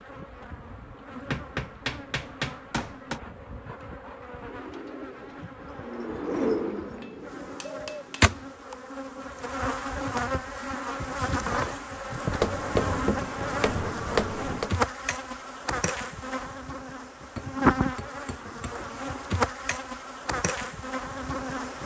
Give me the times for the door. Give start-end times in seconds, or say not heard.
not heard.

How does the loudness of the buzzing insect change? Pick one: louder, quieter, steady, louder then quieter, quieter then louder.
louder.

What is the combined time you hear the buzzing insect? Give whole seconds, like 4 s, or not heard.
22 s.